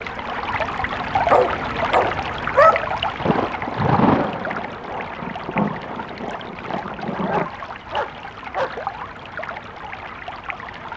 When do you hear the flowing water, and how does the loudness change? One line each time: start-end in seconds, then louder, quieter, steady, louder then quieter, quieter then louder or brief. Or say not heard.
0.0-10.9 quieter.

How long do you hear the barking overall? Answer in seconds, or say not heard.
3 s.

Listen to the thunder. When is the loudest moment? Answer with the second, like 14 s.
4 s.